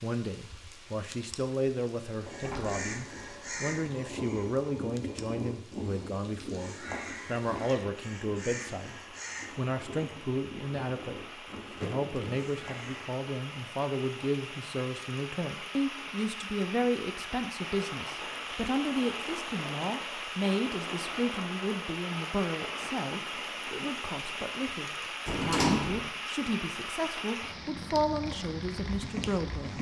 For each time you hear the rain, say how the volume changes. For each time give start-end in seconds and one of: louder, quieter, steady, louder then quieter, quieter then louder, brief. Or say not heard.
0.0-29.7 louder.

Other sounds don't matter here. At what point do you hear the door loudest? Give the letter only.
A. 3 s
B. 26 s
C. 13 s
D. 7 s
B.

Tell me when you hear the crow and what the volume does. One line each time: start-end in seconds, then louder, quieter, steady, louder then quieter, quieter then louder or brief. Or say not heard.
2.1-13.1 quieter.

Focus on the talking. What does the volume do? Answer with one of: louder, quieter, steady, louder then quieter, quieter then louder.
steady.